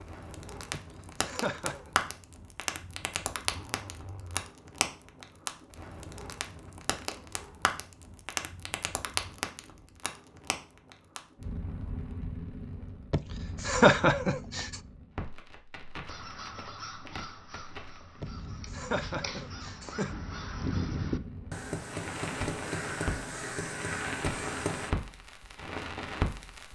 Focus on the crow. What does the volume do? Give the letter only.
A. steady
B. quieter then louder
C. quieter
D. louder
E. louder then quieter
D.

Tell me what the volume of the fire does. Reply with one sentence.
The loudness of the fire goes down, then up.